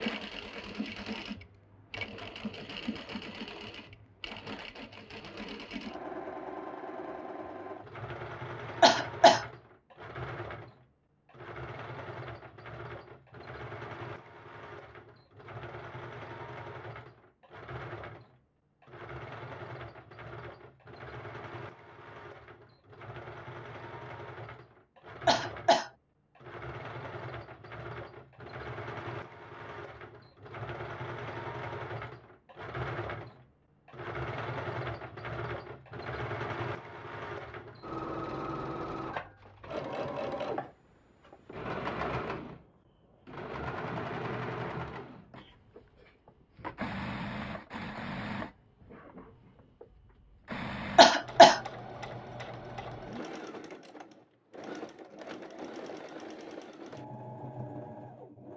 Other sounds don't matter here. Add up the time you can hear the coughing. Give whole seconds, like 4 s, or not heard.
2 s.